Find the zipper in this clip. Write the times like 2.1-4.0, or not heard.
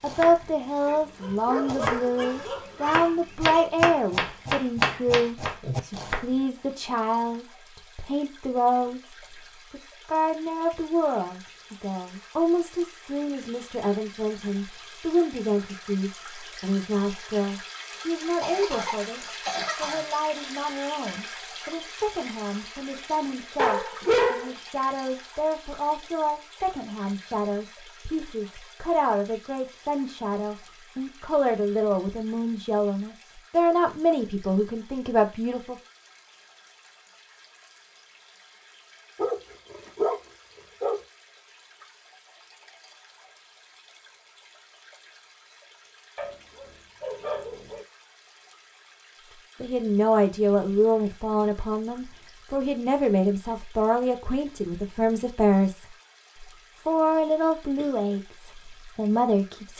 not heard.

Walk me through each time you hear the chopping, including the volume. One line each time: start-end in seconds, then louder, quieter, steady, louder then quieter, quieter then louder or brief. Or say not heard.
0.1-6.2 louder.